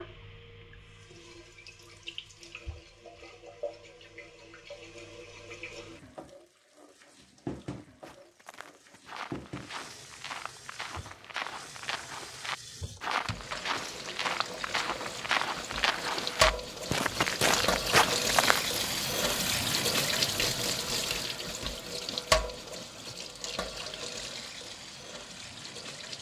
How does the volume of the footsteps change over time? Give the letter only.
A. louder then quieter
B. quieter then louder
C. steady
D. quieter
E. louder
E.